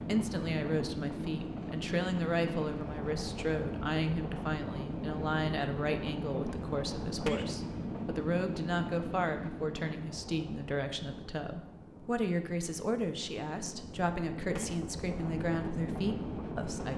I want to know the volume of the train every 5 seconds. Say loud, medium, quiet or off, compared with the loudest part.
loud, loud, medium, loud.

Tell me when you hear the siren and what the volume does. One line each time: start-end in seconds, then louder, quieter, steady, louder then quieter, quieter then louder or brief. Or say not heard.
not heard.